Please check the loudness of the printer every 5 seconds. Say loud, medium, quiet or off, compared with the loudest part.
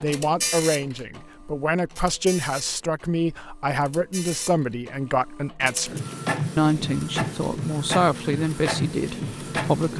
medium, loud.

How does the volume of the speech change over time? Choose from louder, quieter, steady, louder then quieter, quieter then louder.
steady.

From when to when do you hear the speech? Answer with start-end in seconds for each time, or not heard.
0.0-6.0, 6.5-9.9.